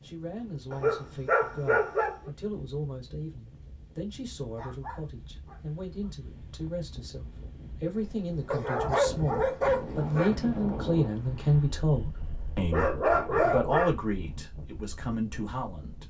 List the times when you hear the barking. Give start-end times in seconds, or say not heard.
0.7-2.3, 4.5-6.1, 8.5-10.4, 12.7-13.9.